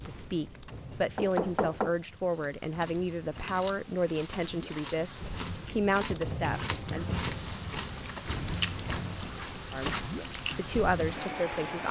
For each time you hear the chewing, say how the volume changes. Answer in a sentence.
The chewing can be heard from 2.3 to 10.8 s, getting louder then quieter.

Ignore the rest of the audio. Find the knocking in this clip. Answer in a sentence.
The knocking can be heard from 1.1 to 1.9 s and from 6.1 to 7.5 s.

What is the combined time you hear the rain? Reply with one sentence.
You can hear the rain for 12 seconds altogether.